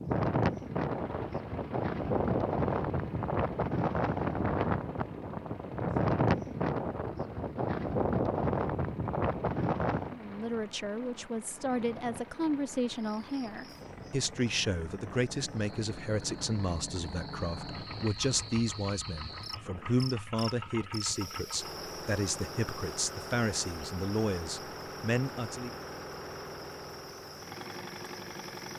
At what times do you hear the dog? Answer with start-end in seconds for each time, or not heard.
not heard.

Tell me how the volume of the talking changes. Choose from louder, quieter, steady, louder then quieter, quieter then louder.
steady.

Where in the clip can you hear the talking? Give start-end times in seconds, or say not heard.
10.1-25.7.